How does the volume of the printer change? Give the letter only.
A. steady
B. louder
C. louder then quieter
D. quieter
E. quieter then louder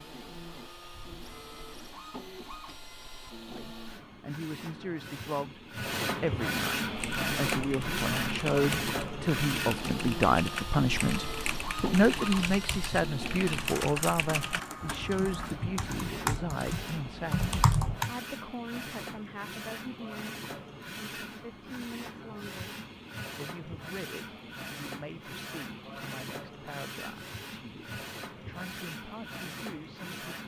C.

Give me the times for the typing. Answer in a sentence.
The typing can be heard from 7.0 to 18.1 s.